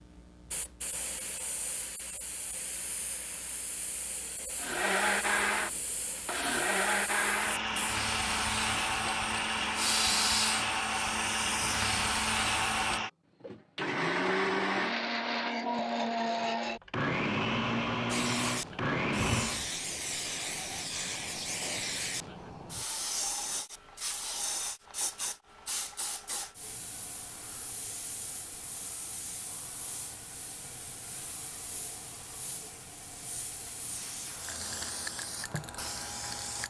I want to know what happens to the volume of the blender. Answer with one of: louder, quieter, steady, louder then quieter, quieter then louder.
steady.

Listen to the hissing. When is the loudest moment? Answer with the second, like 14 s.
10 s.